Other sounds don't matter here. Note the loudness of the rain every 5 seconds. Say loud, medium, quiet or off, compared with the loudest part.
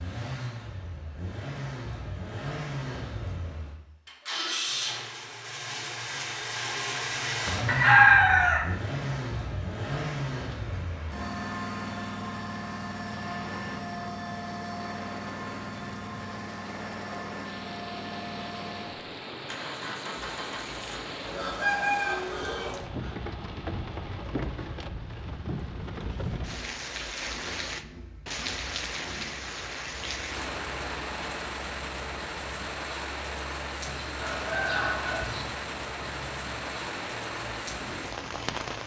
off, off, medium, medium, loud, loud, loud, loud.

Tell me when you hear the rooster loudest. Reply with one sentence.
The volume of the rooster peaks at 8 seconds.